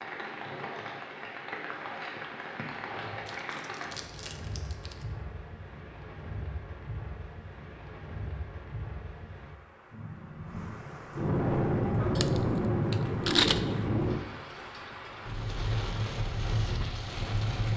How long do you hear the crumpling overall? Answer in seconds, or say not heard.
3 s.